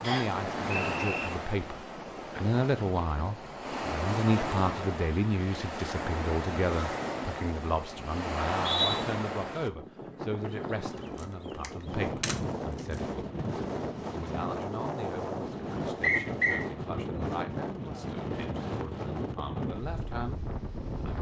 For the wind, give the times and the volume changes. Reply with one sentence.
You can hear the wind from 0.0 to 21.1 s, at a steady volume.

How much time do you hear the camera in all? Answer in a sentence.
You can hear the camera for 2 seconds altogether.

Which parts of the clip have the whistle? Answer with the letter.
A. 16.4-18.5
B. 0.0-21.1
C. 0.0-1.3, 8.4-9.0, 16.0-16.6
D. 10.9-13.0
C.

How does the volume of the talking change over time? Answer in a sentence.
The volume of the talking goes down.